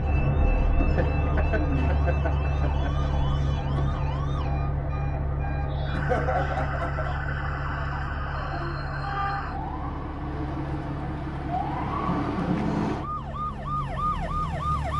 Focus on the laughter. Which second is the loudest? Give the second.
6 s.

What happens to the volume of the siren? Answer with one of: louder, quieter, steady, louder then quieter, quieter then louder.
louder.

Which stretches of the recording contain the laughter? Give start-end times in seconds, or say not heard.
0.8-3.1, 5.9-7.1, 12.2-12.7.